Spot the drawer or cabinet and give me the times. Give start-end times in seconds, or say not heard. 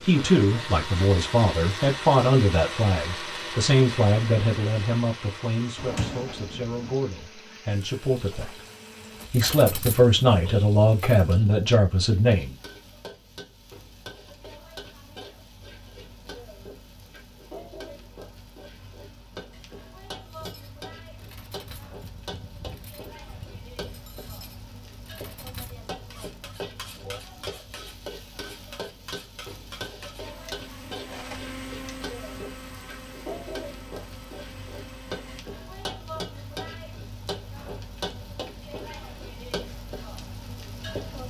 5.8-7.0.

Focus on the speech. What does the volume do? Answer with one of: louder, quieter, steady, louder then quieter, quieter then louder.
quieter then louder.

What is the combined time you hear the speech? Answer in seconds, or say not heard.
12 s.